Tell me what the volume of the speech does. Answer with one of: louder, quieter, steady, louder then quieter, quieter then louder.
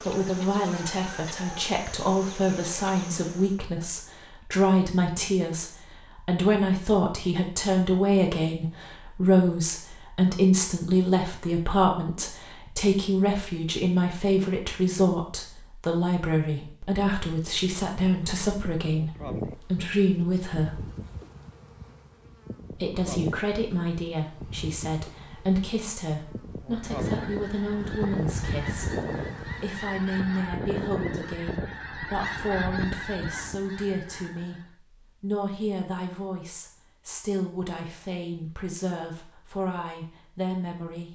quieter.